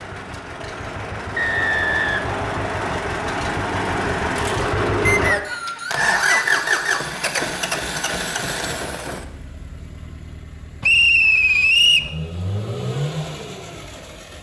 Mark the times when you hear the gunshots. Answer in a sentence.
The gunshots can't be heard in this clip.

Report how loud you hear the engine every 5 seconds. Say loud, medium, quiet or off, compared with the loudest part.
loud, loud, medium.